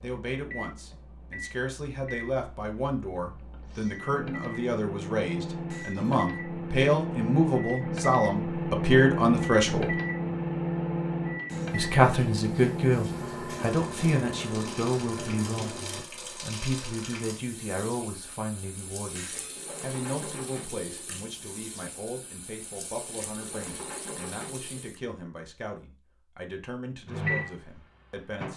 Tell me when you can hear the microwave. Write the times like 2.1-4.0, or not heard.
0.0-16.1, 27.1-28.5.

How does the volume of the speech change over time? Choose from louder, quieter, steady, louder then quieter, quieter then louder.
louder then quieter.